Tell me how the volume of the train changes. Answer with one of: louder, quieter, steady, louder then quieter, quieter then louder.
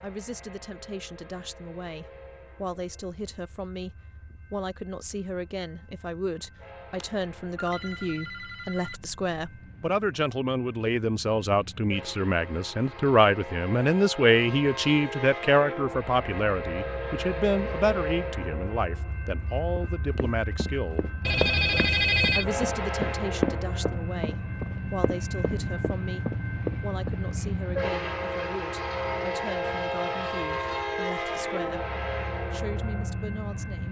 louder.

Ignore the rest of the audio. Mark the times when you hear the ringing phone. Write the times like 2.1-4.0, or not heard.
7.0-9.0, 21.2-22.6.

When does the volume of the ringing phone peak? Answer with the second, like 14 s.
22 s.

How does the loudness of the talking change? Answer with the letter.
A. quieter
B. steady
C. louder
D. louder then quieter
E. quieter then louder
D.